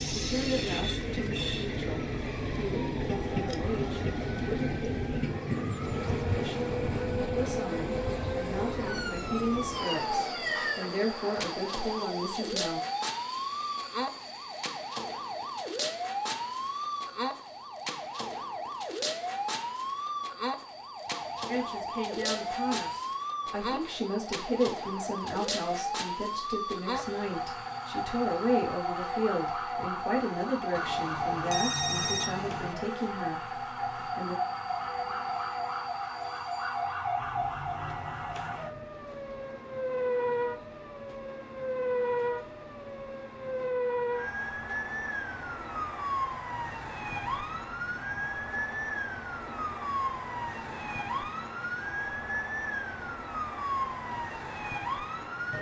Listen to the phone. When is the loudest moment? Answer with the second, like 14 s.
32 s.